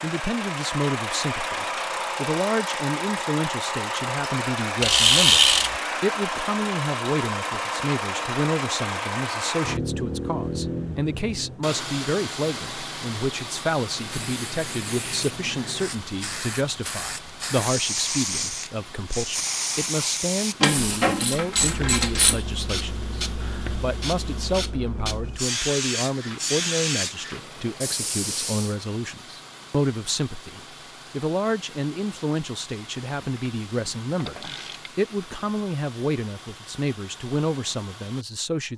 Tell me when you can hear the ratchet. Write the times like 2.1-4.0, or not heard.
4.8-5.8, 20.6-22.4, 33.1-34.9.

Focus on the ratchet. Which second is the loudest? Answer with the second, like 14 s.
5 s.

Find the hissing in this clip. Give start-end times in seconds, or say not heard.
13.9-28.8.